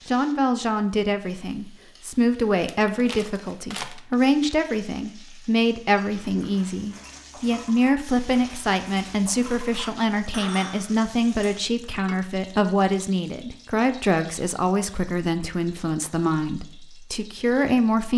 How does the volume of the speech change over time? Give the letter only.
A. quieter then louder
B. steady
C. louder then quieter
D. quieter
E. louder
B.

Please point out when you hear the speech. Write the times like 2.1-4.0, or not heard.
0.1-18.1.